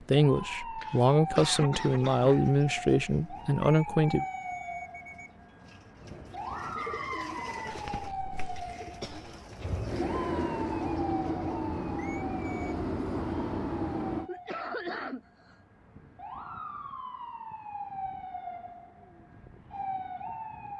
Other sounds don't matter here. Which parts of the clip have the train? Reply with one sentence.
The train can be heard from 6.0 to 14.3 s.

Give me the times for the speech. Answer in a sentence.
The speech can be heard from 0.1 to 4.2 s.